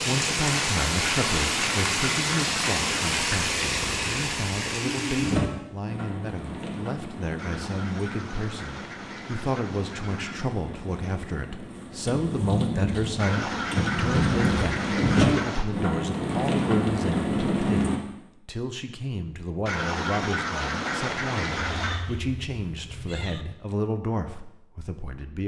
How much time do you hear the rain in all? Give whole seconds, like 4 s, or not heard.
18 s.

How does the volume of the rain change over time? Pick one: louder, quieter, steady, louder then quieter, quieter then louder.
quieter then louder.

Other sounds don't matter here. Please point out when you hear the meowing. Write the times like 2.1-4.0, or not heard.
21.4-23.4.